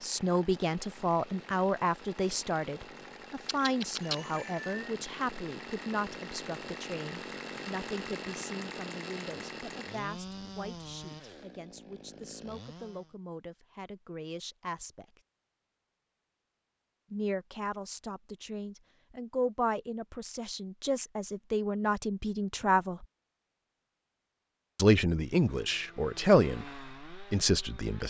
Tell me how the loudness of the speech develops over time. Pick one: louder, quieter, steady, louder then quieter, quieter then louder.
quieter then louder.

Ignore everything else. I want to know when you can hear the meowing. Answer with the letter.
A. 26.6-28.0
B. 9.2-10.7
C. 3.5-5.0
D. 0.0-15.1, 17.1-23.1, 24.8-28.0
C.